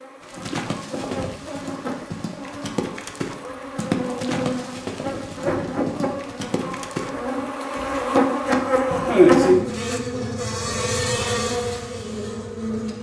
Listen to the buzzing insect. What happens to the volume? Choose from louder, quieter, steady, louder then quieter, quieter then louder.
louder then quieter.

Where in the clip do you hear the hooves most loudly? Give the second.
4 s.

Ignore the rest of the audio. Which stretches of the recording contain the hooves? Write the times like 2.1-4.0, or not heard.
0.2-7.1.